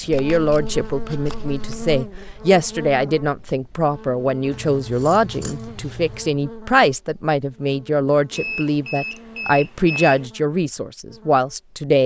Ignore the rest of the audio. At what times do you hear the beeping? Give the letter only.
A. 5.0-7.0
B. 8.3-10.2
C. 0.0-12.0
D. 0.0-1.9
B.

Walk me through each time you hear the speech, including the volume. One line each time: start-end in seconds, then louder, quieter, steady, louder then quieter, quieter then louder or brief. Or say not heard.
0.0-12.0 steady.